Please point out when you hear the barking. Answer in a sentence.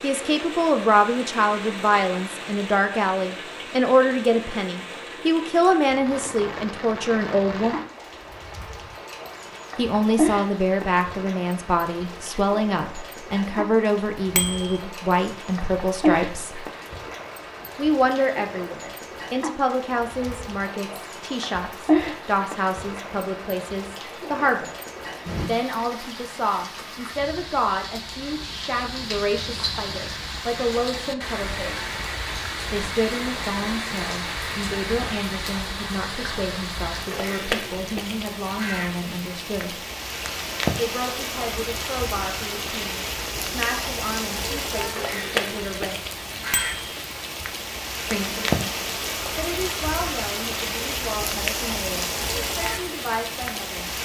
You can't hear the barking here.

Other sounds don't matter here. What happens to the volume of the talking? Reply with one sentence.
The volume of the talking goes down.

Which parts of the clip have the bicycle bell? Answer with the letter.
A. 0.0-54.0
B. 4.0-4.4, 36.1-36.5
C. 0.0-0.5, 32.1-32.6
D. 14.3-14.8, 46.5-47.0
D.